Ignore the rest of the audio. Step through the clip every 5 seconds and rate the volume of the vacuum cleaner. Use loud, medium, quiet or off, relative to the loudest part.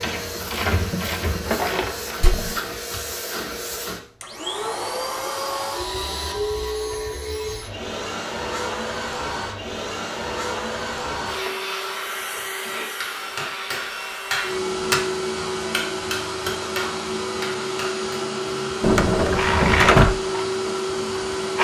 medium, loud, loud, loud, loud.